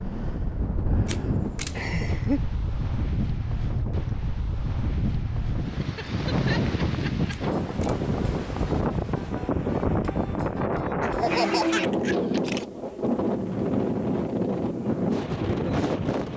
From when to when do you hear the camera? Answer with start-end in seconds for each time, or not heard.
1.1-1.9, 7.3-8.1, 12.3-12.8.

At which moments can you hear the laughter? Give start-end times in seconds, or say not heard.
1.7-2.4, 5.8-7.3, 11.0-12.2.